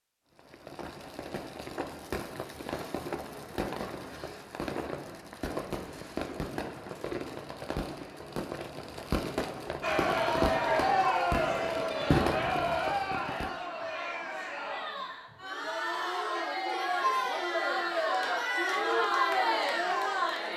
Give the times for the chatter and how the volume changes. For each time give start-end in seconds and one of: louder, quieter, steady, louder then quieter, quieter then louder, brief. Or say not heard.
9.8-20.5 quieter then louder.